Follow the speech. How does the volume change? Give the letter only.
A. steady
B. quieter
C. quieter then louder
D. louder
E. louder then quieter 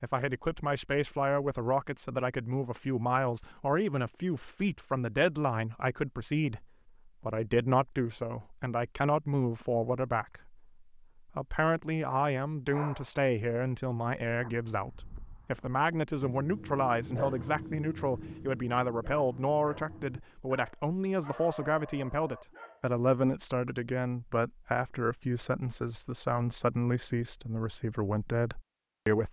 A.